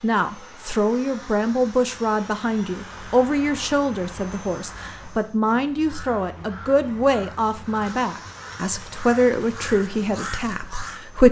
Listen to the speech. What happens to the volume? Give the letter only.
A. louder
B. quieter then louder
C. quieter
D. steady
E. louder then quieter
D.